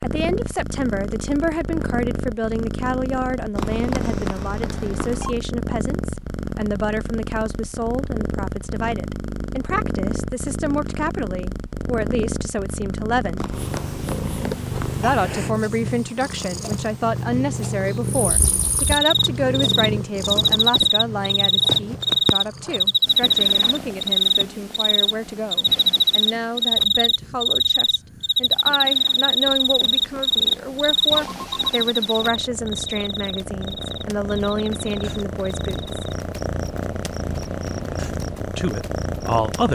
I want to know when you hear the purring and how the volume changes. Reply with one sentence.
The purring can be heard from 0.0 to 39.7 s, getting quieter then louder.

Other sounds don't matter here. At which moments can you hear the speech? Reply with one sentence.
You can hear the speech from 0.0 to 13.4 s, from 14.9 to 35.9 s and from 38.4 to 39.7 s.